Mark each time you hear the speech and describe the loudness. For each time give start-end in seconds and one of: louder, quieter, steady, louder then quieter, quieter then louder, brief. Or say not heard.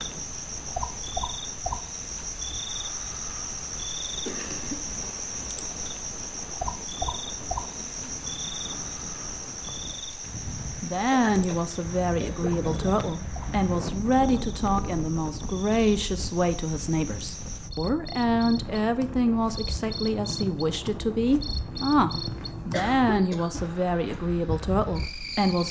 10.8-25.6 steady.